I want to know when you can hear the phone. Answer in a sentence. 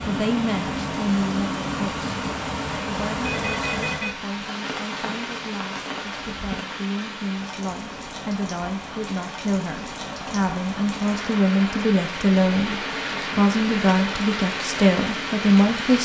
You can hear the phone from 3.2 to 4.2 s.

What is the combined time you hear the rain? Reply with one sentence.
The rain can be heard for 16 seconds in total.